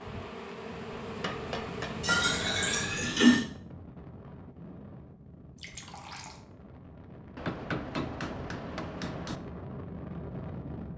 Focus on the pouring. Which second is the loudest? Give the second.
3 s.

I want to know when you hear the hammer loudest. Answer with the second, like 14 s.
8 s.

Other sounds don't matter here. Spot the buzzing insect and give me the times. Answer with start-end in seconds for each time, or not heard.
0.0-3.0.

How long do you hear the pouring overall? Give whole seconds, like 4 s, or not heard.
2 s.